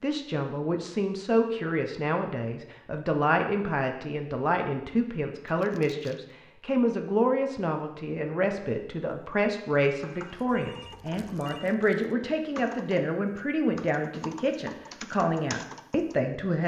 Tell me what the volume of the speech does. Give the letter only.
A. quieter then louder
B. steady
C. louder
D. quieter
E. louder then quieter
B.